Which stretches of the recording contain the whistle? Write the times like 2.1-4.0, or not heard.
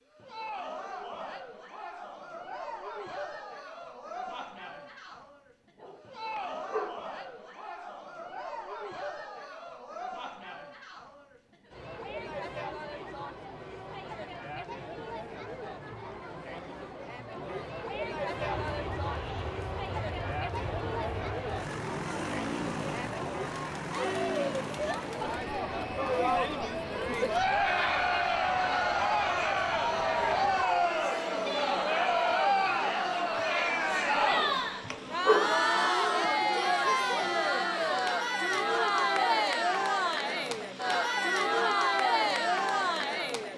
not heard.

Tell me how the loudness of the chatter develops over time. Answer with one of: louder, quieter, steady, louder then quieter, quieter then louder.
louder.